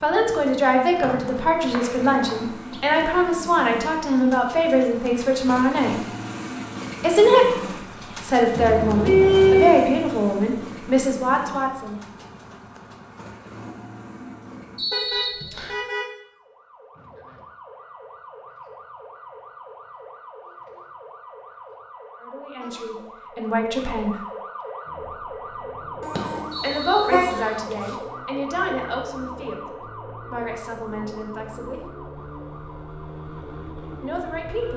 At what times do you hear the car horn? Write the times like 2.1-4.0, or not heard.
8.6-9.8, 14.9-16.1, 26.0-27.9.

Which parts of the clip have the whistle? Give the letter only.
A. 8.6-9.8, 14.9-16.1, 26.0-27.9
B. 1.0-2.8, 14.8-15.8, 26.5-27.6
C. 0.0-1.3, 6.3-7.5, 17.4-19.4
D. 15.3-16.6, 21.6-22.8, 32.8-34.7
B.